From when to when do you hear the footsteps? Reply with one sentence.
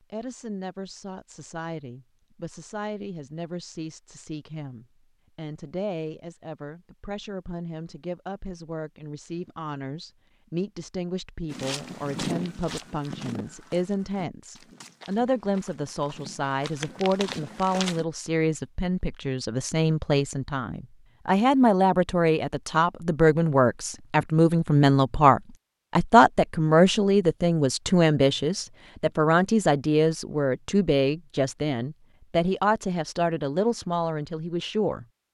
You can hear the footsteps from 11.5 to 18.1 s.